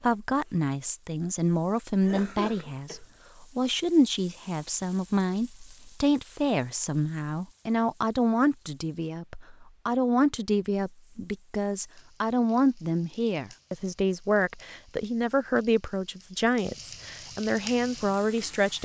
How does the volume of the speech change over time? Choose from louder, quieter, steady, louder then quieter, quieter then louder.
steady.